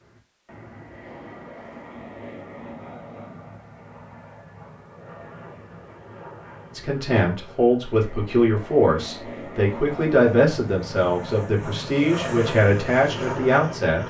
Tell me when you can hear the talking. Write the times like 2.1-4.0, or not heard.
6.8-14.0.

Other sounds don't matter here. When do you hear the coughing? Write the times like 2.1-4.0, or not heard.
not heard.